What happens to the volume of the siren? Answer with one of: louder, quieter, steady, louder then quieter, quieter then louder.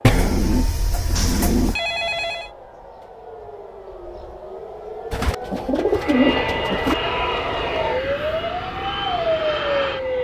louder.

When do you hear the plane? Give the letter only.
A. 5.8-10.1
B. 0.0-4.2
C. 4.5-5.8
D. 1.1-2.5
A.